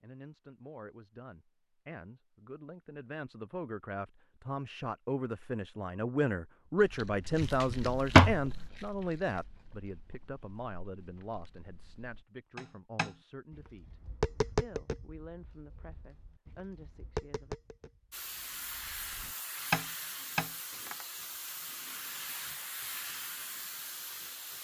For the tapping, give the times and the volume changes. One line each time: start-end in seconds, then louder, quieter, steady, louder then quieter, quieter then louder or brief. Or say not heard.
12.6-21.1 quieter then louder.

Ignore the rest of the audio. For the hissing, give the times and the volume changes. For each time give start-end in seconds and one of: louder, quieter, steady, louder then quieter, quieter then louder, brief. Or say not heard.
18.1-24.5 steady.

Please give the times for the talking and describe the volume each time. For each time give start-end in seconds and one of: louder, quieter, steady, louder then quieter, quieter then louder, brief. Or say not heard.
0.0-17.6 louder then quieter.